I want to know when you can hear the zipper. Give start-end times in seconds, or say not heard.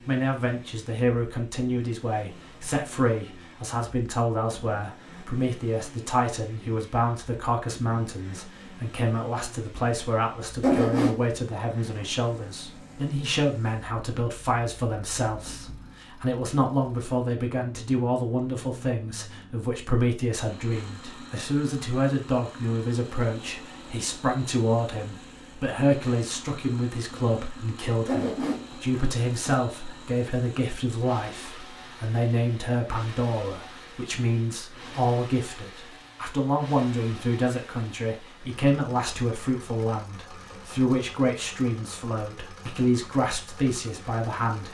10.6-11.2, 28.1-29.6.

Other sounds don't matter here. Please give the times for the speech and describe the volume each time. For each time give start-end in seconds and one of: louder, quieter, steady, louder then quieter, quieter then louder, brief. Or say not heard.
0.1-44.6 steady.